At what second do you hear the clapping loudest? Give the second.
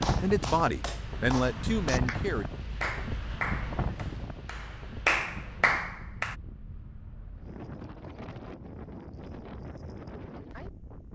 5 s.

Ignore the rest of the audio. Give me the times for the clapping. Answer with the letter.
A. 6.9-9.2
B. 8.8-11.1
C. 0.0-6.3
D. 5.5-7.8
C.